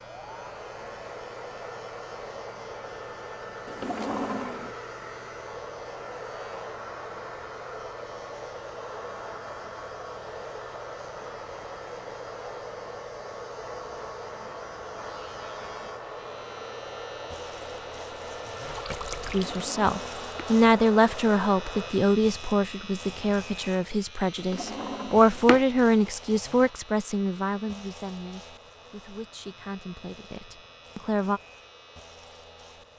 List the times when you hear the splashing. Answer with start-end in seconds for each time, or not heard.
18.6-19.6.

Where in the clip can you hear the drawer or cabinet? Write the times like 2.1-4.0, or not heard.
3.6-4.8, 19.3-20.2, 24.5-25.6.